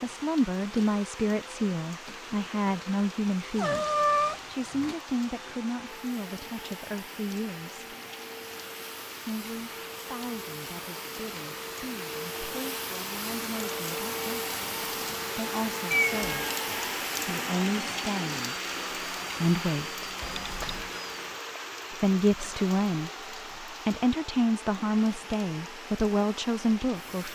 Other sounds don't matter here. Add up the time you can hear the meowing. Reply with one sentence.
You can hear the meowing for 3 seconds altogether.